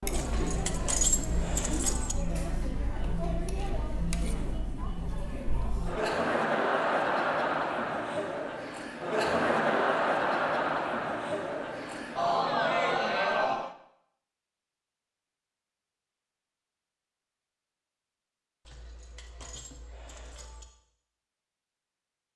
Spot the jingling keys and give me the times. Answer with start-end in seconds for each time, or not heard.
0.1-2.1, 18.6-20.6.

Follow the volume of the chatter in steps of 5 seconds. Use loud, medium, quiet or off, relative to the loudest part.
medium, loud, loud, off, off.